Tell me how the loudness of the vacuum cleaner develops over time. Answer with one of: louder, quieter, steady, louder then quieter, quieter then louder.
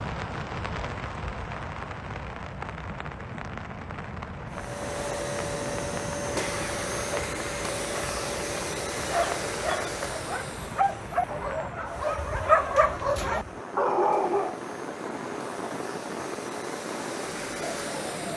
quieter then louder.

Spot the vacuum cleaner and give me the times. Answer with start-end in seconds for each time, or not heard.
4.5-18.3.